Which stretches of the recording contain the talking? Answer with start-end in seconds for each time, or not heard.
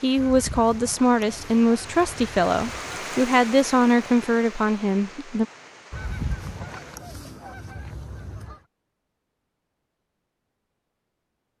0.0-5.5.